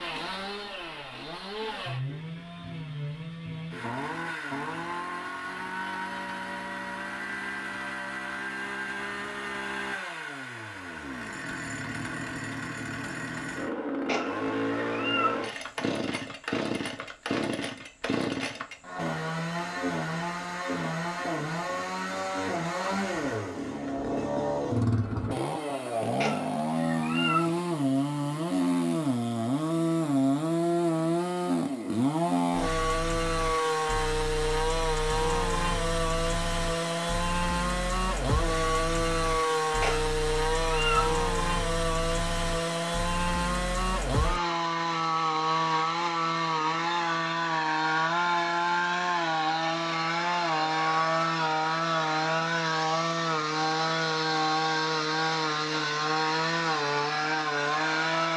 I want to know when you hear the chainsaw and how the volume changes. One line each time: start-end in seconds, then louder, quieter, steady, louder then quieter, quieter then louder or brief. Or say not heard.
0.0-58.3 louder.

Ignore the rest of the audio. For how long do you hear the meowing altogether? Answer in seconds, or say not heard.
4 s.